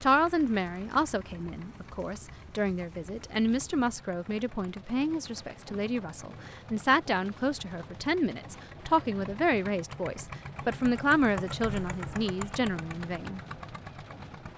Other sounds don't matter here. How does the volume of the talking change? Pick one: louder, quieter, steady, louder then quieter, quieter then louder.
steady.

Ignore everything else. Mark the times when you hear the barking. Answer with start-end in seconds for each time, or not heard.
not heard.